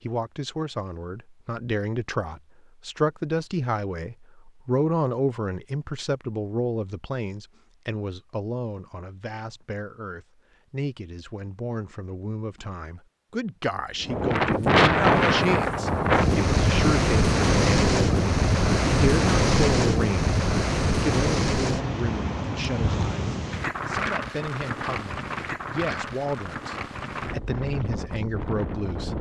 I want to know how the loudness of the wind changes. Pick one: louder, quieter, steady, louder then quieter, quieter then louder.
quieter.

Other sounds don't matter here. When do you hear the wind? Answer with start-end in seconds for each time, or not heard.
14.0-29.1.